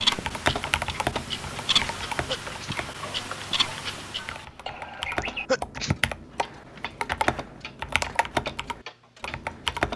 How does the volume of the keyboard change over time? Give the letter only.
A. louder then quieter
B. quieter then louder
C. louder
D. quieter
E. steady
B.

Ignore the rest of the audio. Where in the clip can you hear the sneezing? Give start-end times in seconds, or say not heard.
2.2-2.8, 5.2-6.0.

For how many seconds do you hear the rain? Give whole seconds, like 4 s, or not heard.
not heard.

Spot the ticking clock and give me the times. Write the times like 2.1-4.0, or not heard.
0.0-9.8.